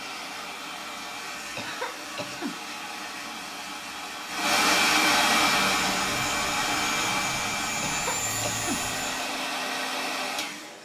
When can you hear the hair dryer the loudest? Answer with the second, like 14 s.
5 s.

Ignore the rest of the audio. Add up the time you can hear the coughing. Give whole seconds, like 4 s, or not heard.
2 s.